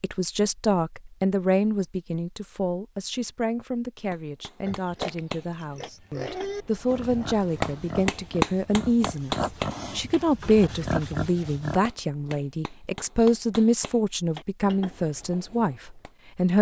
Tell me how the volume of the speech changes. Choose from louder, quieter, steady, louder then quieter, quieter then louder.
quieter then louder.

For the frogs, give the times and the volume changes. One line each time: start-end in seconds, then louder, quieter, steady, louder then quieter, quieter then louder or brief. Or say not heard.
not heard.